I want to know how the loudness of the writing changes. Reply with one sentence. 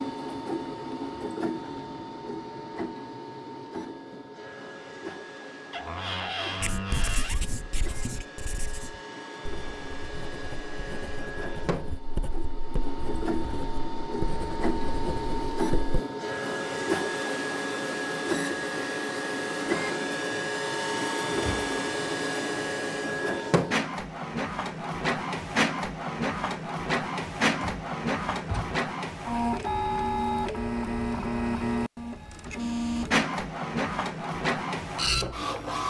The volume of the writing goes down, then up.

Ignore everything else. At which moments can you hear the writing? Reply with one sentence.
You can hear the writing from 6.6 to 15.9 s.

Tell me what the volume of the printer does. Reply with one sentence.
The volume of the printer goes up.